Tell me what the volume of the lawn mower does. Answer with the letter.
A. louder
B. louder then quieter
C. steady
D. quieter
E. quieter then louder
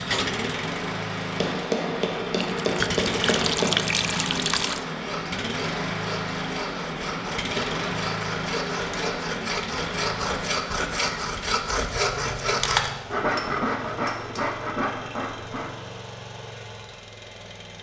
D.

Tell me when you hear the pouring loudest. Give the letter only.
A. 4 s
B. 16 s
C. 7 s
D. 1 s
A.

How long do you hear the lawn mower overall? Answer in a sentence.
The lawn mower can be heard for 18 seconds in total.